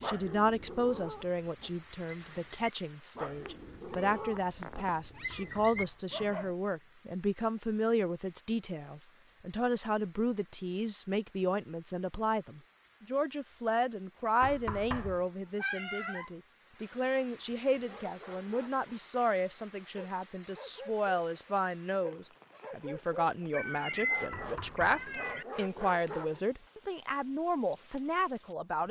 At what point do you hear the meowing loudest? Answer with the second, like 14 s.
24 s.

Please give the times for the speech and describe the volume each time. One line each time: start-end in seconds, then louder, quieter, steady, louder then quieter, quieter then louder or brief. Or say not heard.
0.0-28.8 steady.